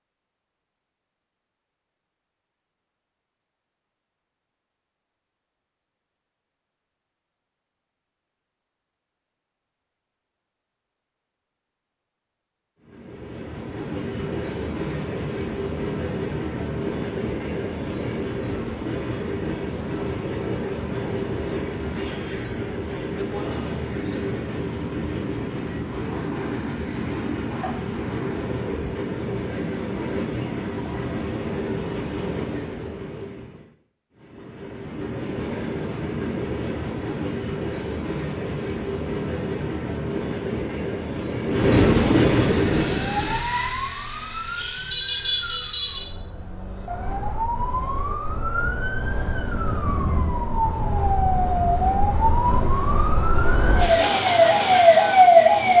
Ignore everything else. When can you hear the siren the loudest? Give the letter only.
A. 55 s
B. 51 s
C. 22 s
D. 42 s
A.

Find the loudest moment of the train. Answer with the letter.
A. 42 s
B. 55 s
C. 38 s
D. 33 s
A.